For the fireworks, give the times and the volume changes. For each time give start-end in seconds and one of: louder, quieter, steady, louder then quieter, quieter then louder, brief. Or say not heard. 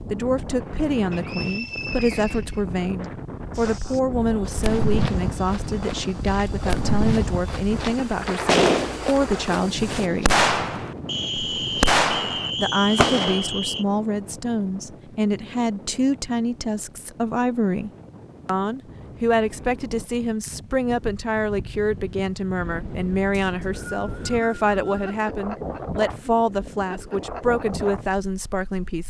3.6-13.6 louder.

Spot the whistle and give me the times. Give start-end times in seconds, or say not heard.
1.1-3.0, 11.1-13.8, 23.3-25.1.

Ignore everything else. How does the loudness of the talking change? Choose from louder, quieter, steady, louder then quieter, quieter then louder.
steady.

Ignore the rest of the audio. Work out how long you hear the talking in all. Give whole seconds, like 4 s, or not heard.
27 s.